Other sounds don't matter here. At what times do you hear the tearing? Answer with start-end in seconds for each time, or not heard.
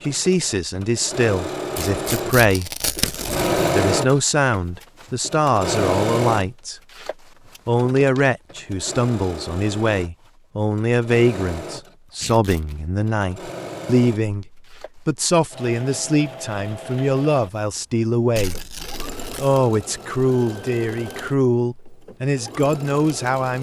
1.8-3.5, 12.2-12.8, 18.4-19.6.